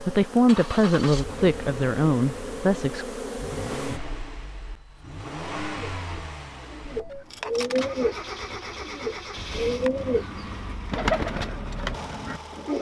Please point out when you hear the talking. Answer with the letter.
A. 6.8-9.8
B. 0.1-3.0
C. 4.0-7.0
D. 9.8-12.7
B.